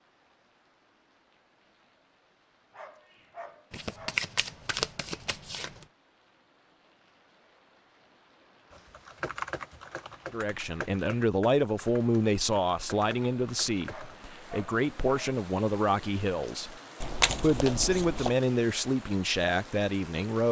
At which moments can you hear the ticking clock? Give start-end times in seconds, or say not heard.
not heard.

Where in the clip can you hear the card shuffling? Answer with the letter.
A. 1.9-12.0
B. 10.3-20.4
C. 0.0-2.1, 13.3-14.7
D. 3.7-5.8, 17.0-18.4
D.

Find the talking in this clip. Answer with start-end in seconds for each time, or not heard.
10.3-20.4.